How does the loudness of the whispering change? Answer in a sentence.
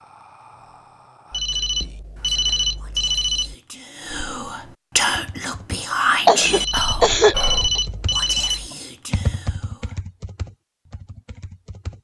The loudness of the whispering goes up, then down.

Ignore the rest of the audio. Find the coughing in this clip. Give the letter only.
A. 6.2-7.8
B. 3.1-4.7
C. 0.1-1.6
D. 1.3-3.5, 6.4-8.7
A.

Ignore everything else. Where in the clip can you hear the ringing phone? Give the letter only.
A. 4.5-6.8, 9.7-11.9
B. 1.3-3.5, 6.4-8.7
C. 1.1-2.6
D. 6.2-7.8
B.